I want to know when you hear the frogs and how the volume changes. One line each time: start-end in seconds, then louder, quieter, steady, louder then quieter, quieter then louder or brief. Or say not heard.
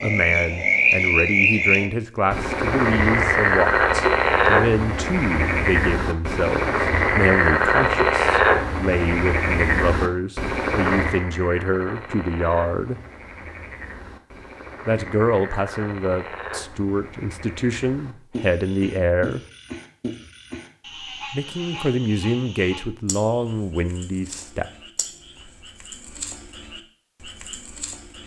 0.0-28.2 quieter.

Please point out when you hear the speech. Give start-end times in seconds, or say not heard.
0.0-13.0, 14.8-19.4, 21.3-24.6.